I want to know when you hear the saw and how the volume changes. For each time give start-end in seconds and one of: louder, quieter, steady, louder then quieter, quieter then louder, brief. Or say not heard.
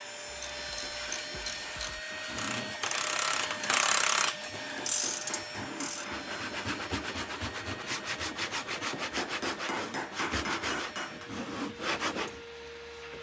2.1-12.4 louder.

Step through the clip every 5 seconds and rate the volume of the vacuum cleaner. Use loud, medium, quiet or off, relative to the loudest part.
loud, medium, medium.